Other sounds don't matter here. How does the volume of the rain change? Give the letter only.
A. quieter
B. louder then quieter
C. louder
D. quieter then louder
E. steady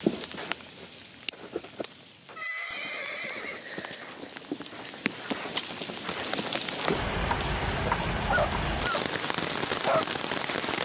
C.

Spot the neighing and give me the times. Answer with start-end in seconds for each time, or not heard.
2.4-3.6.